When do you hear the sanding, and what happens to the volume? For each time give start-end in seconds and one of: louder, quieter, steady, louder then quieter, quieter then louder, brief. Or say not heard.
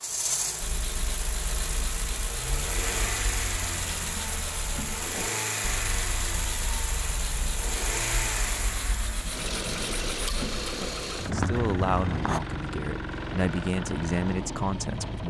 0.6-12.4 louder.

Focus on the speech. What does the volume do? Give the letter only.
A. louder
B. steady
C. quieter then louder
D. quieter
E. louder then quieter
C.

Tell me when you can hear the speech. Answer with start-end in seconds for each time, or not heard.
11.2-15.2.